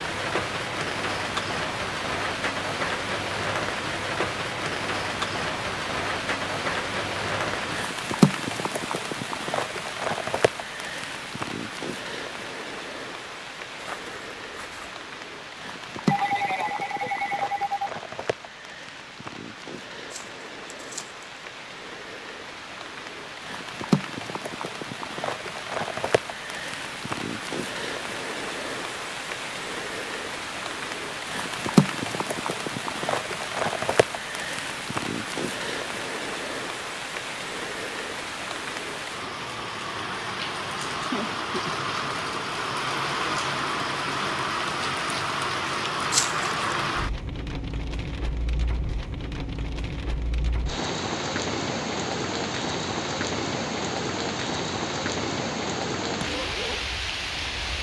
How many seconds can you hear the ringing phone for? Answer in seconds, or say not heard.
2 s.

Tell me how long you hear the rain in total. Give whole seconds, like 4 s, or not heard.
58 s.